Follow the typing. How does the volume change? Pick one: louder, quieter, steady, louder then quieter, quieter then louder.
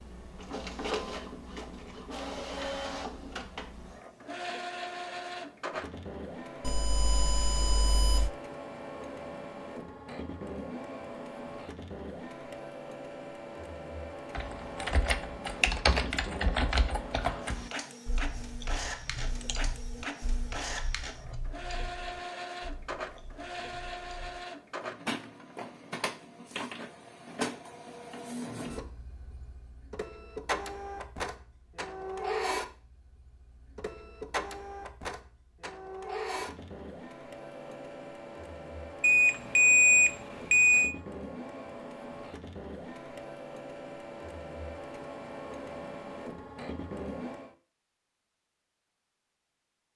quieter.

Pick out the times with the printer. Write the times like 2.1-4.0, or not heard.
0.0-47.5.